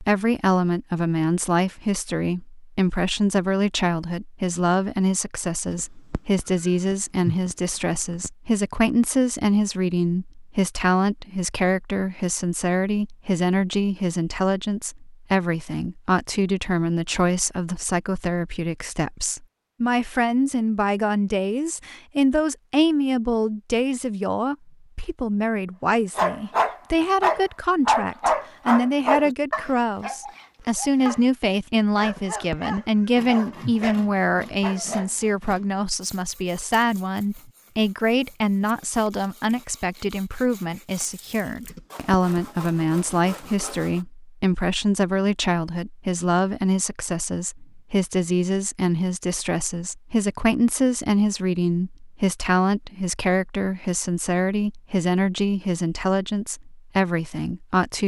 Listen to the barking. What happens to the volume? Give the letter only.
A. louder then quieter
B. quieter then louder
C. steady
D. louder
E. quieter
E.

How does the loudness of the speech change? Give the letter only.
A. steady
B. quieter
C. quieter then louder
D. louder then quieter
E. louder
A.